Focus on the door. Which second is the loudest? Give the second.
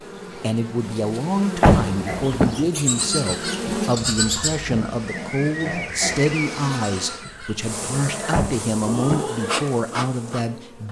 2 s.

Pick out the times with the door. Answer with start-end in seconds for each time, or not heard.
1.6-2.6, 8.3-9.2.